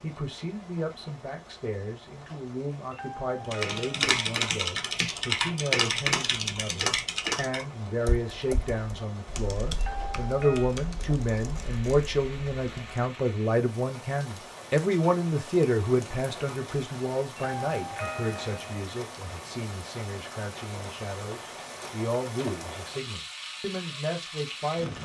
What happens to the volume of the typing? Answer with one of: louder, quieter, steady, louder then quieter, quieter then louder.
quieter.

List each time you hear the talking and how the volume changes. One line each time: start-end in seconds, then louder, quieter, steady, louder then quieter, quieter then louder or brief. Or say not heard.
0.0-25.0 louder then quieter.